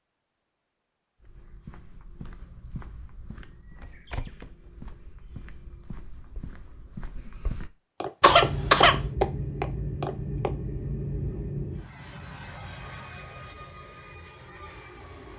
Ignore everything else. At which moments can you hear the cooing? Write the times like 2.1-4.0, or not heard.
not heard.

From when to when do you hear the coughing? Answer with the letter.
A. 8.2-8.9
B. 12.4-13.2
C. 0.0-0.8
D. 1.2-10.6
A.